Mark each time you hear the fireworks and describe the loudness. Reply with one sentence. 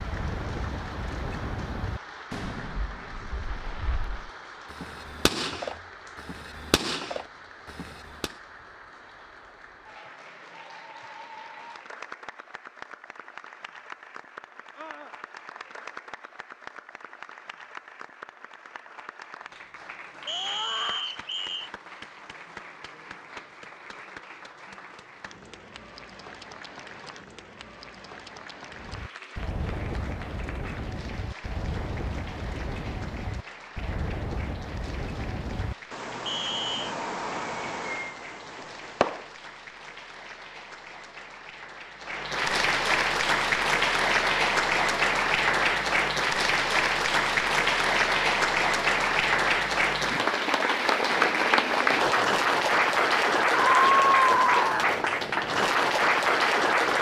You can hear the fireworks from 0.0 to 8.3 s, getting quieter then louder; and from 28.7 to 39.4 s, at a steady volume.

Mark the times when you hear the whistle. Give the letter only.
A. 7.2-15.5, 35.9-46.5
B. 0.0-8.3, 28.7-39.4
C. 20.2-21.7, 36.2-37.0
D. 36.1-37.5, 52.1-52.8
C.